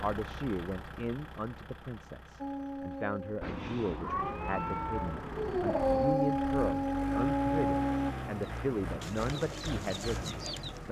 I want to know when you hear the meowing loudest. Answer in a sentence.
The loudest moment of the meowing is at 4 seconds.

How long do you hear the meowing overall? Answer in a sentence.
The meowing can be heard for 3 seconds in total.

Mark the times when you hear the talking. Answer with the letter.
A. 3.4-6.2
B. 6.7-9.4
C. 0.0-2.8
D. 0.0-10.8
D.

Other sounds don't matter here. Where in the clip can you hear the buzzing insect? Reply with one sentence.
You can't hear the buzzing insect here.